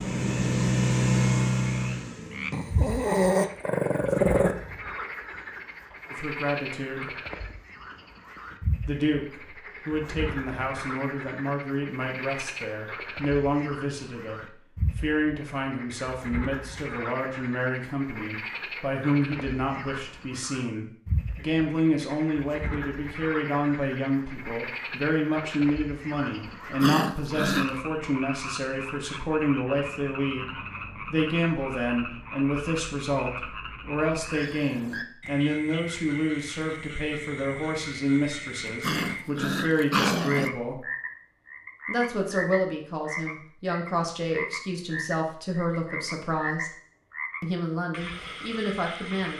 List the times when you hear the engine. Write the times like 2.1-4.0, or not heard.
0.0-3.0.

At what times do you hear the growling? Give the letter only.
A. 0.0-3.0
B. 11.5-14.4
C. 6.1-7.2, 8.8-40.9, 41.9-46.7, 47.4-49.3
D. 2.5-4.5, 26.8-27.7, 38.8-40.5
D.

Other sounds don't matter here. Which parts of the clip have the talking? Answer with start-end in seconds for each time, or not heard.
6.1-7.2, 8.8-40.9, 41.9-46.7, 47.4-49.3.